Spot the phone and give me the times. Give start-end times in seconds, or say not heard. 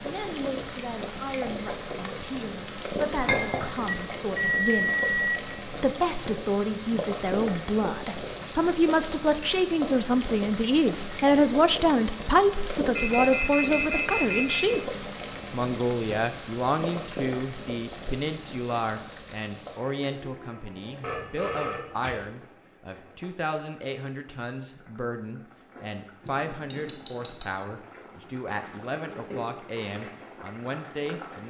3.9-5.4, 12.9-14.8, 21.0-22.1.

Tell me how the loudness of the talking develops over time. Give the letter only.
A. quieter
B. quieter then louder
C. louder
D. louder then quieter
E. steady
D.